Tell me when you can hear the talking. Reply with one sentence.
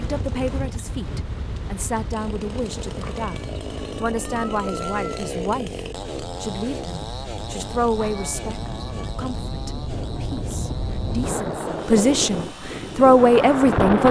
The talking can be heard from 0.0 to 14.0 s.